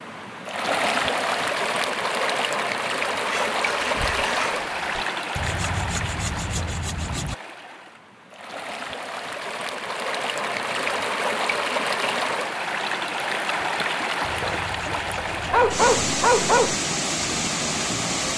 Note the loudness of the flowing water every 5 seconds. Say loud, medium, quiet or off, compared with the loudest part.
loud, medium, loud, loud.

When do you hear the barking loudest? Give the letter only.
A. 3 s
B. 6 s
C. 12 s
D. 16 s
D.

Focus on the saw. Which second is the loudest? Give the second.
6 s.